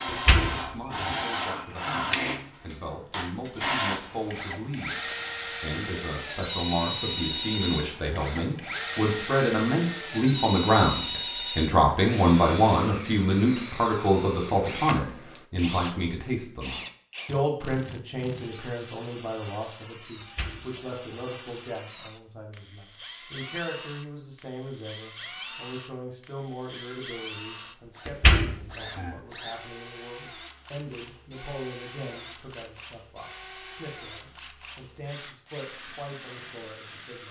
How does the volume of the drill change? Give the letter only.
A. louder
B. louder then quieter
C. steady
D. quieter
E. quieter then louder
D.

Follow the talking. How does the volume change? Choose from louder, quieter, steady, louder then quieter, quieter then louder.
louder then quieter.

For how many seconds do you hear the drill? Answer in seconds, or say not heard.
37 s.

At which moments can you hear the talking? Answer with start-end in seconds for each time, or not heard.
0.0-37.2.